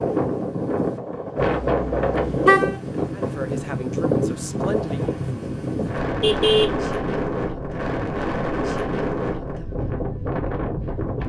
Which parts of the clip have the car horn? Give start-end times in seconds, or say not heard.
1.4-2.8, 6.0-6.8.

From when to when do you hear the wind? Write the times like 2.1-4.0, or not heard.
0.0-11.2.